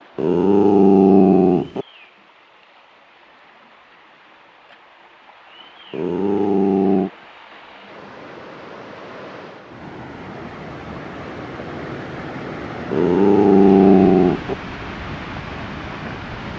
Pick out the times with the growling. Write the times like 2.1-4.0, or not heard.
0.1-1.9, 5.9-7.1, 12.9-14.6.